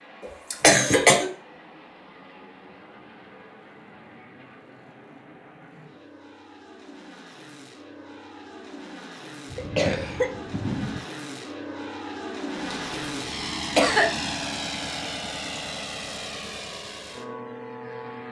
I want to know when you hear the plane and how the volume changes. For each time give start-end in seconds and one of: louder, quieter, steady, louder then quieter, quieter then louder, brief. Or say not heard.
0.0-18.2 louder.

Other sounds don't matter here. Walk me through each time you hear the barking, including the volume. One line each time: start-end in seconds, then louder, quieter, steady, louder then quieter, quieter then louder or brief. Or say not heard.
not heard.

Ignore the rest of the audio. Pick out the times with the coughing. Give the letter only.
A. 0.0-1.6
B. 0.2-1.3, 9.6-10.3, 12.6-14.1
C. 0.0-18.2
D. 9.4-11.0
B.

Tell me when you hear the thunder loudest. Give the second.
11 s.